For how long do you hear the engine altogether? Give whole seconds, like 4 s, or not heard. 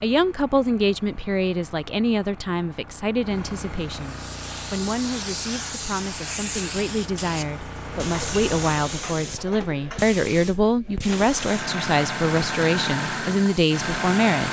12 s.